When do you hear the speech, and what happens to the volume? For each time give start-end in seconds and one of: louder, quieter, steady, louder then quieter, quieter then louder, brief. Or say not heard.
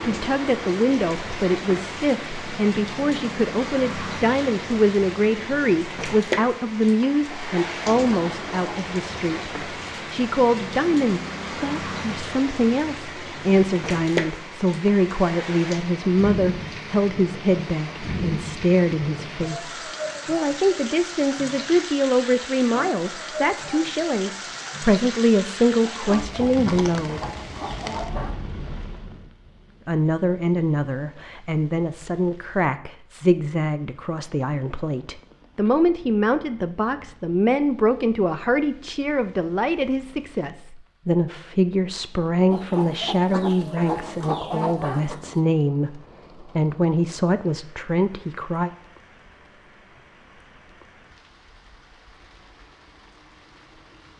0.0-27.3 steady
29.9-48.7 steady.